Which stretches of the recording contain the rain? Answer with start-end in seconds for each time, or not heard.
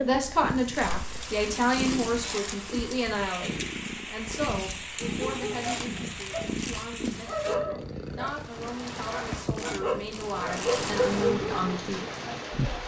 0.0-12.8.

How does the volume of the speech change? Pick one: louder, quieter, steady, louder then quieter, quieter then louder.
quieter then louder.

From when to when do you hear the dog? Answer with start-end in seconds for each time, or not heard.
5.0-11.8.